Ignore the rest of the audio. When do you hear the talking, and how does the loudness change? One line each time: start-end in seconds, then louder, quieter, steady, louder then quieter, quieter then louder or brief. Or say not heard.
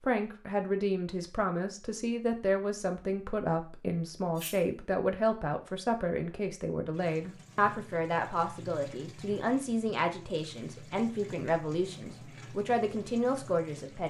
0.0-14.0 steady.